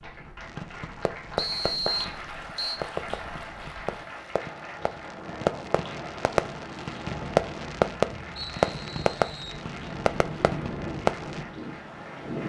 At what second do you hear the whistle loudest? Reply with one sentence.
The volume of the whistle peaks at 2 seconds.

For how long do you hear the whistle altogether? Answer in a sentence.
The whistle can be heard for 3 seconds in total.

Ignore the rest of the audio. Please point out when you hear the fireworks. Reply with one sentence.
You can hear the fireworks from 0.5 to 11.4 s.